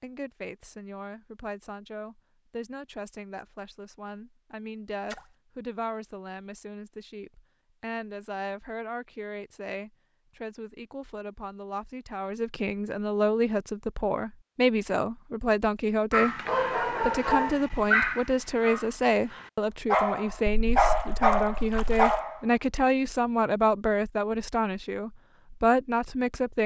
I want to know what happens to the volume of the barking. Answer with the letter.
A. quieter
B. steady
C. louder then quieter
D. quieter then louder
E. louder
D.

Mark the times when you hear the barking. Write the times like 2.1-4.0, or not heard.
16.1-22.4.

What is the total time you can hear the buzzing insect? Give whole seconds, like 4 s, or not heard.
not heard.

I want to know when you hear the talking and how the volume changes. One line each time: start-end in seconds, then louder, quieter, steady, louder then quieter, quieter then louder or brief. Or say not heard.
0.0-26.6 louder.